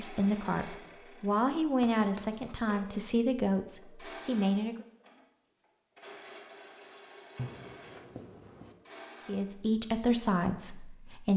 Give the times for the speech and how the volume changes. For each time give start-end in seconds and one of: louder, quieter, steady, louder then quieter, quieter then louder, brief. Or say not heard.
0.0-4.8 louder then quieter
9.2-11.3 brief.